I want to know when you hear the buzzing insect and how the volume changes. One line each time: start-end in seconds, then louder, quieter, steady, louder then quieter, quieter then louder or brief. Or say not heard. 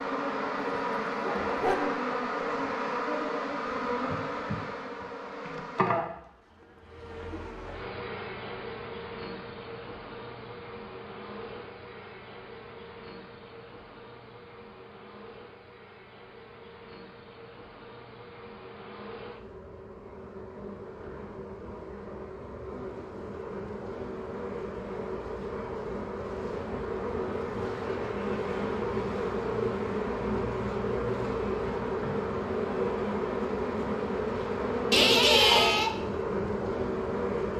0.0-37.5 quieter then louder.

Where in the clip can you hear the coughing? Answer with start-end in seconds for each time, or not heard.
34.9-35.9.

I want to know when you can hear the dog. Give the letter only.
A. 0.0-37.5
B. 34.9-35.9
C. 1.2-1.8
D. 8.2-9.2
C.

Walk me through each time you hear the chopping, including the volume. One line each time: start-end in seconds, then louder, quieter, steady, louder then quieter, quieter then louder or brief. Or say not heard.
not heard.